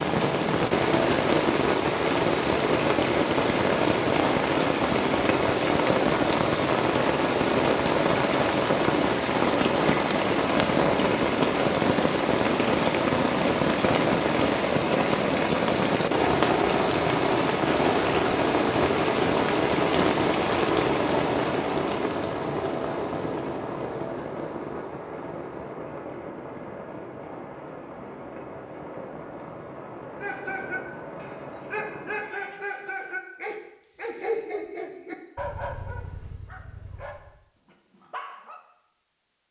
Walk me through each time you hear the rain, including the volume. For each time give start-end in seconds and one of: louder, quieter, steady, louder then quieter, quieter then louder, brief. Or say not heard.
0.0-32.5 quieter.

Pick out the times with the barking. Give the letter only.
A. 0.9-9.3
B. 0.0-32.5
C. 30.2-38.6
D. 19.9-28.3
C.